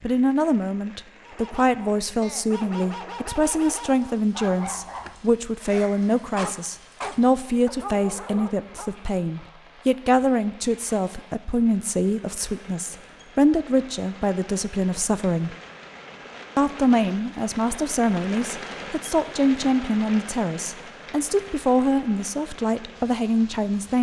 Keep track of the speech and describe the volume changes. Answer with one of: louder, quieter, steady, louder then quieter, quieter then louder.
steady.